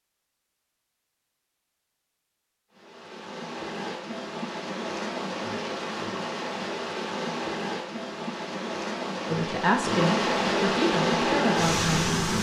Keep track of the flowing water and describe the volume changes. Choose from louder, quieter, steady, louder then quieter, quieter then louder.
louder.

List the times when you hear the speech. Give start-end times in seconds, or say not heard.
9.2-12.2.